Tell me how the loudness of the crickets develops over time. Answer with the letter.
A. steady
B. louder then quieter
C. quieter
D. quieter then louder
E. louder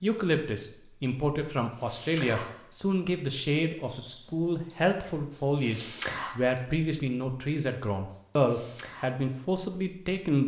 B.